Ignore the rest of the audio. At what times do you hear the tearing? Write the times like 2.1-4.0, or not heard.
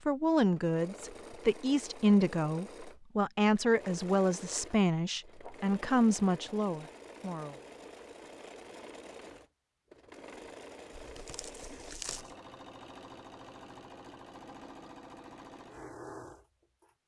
10.9-12.3.